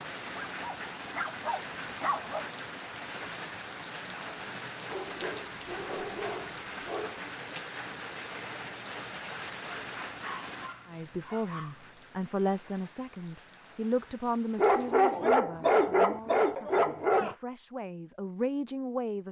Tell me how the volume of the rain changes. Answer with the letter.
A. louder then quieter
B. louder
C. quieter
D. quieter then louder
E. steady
C.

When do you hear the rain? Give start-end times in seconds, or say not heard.
0.0-15.2.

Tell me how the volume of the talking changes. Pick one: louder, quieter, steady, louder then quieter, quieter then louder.
quieter then louder.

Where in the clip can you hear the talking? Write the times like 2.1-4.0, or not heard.
10.8-19.2.